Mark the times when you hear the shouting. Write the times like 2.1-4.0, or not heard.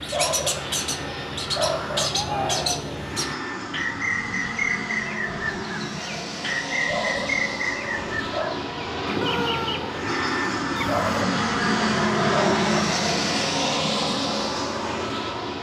2.1-3.0, 9.2-9.8.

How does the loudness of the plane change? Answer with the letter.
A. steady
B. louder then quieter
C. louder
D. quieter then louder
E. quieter
C.